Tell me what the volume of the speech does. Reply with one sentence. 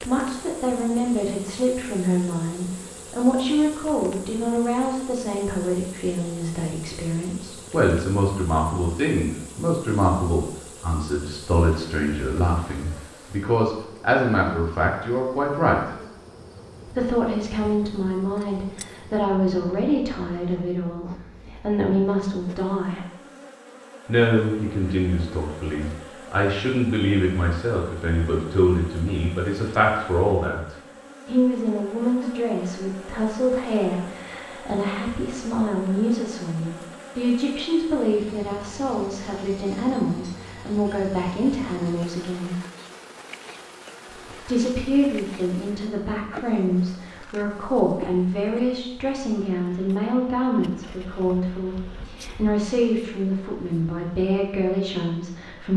The volume of the speech stays about the same.